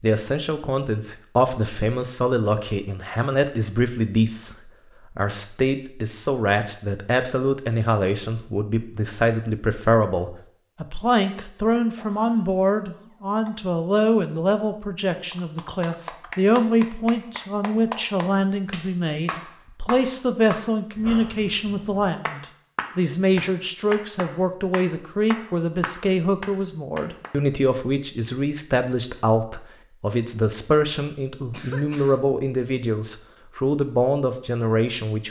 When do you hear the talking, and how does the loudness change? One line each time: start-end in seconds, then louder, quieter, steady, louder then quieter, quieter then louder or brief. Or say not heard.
0.0-35.2 steady.